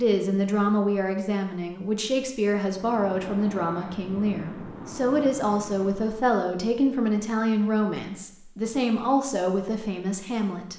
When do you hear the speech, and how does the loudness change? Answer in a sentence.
You can hear the speech from 0.0 to 10.7 s, at a steady volume.